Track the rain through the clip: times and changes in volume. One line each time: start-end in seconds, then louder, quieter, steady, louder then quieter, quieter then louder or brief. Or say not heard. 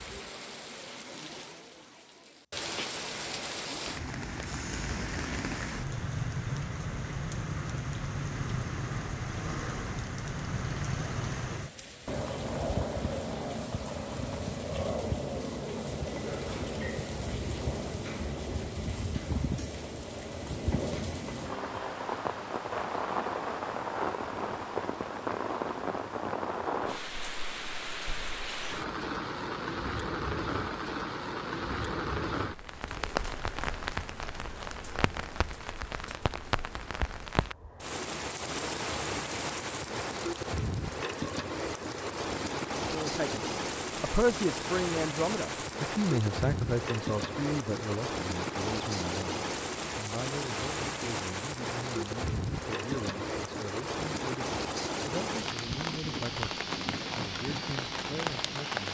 0.0-58.8 steady.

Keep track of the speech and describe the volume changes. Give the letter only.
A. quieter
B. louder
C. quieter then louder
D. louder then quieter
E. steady
A.